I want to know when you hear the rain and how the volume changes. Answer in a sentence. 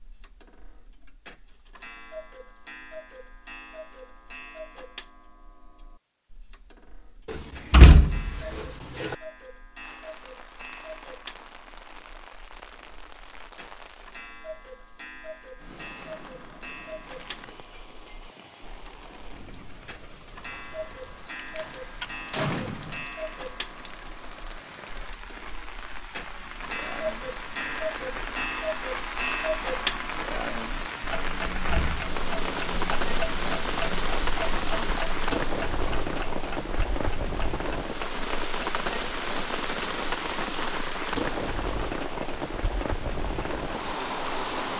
You can hear the rain from 9.8 to 44.7 s, getting louder.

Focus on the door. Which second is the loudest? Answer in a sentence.
The volume of the door peaks at 8 seconds.